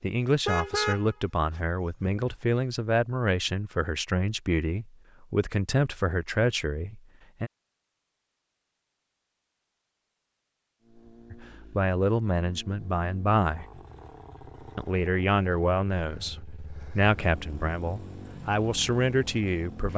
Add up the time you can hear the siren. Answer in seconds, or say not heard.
not heard.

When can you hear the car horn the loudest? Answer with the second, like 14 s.
1 s.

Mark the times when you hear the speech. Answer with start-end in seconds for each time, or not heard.
0.0-7.5, 11.3-13.7, 14.8-19.9.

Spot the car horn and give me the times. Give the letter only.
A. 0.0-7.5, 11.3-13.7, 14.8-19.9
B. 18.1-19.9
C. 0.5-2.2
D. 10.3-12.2
C.